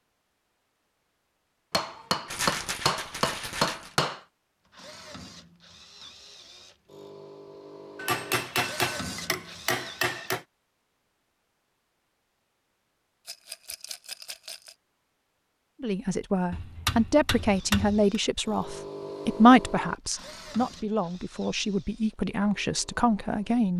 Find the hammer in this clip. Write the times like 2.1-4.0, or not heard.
1.7-4.2, 8.0-10.4, 16.5-18.1.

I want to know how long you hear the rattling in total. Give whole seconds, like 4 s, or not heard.
3 s.